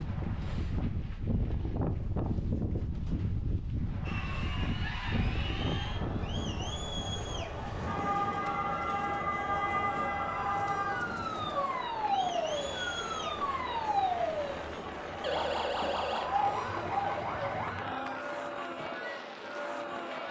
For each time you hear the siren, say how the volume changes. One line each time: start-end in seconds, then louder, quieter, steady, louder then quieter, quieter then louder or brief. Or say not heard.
7.5-17.9 steady.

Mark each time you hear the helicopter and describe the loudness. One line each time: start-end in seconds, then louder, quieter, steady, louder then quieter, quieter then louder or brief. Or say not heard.
not heard.